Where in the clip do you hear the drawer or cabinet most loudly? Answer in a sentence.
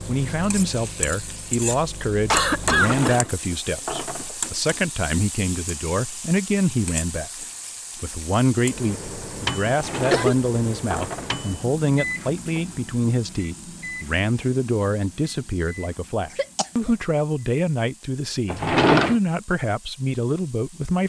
The loudest moment of the drawer or cabinet is at 19 seconds.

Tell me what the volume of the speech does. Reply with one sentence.
The volume of the speech stays about the same.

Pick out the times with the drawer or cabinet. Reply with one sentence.
The drawer or cabinet can be heard from 2.6 to 4.4 s, from 9.7 to 11.4 s and from 18.5 to 19.1 s.